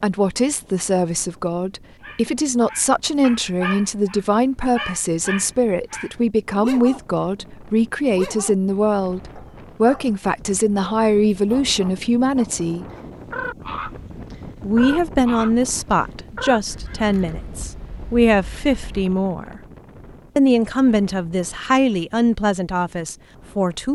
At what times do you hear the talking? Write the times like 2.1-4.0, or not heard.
0.0-12.8, 14.6-19.6, 20.4-23.9.